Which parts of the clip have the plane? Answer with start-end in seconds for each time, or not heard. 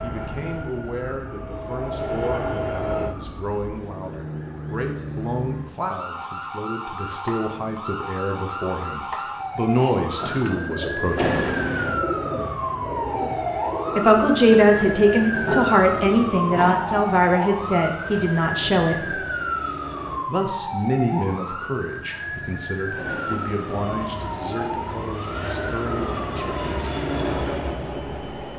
0.0-3.1, 11.2-20.2, 22.9-28.5.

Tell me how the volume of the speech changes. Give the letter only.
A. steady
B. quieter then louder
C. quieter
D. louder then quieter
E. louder
D.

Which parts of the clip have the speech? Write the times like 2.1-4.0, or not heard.
0.0-11.5, 13.9-19.2, 20.2-26.9.